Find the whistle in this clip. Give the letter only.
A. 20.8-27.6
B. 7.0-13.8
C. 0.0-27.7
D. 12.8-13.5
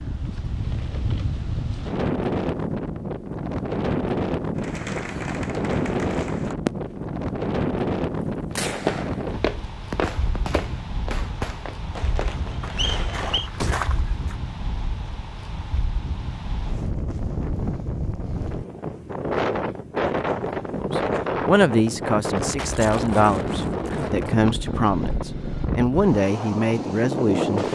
D.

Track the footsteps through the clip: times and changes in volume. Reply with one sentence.
The footsteps can be heard from 8.8 to 14.3 s, getting quieter then louder.